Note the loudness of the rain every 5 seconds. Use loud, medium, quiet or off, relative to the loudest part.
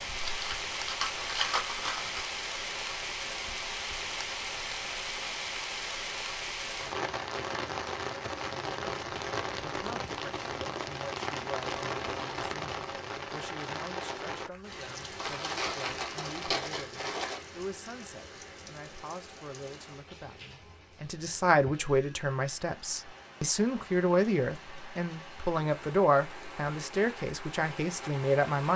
loud, loud, loud, medium, quiet, medium.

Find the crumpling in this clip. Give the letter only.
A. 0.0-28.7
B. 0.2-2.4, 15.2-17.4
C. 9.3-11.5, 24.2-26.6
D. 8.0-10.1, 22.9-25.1
B.